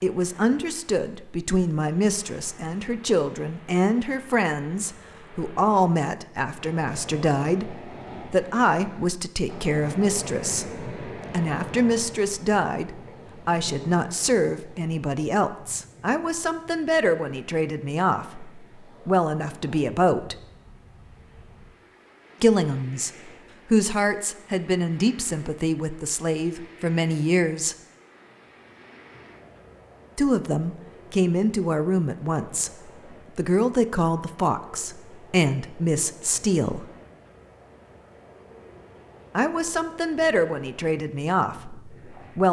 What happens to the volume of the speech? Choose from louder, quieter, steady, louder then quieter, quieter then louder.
steady.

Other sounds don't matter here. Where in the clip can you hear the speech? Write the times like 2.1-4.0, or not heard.
0.0-20.4, 22.4-27.8, 30.1-36.9, 39.4-42.4.